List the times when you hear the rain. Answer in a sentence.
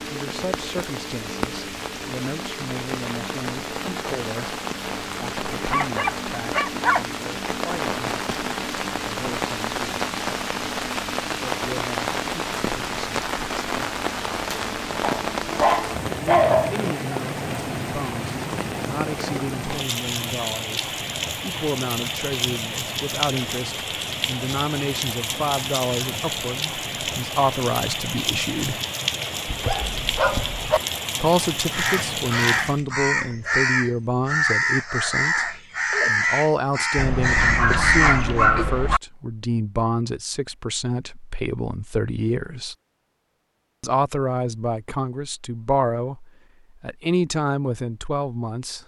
You can hear the rain from 0.0 to 32.8 s.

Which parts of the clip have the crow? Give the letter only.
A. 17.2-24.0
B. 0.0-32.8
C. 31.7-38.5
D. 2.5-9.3
C.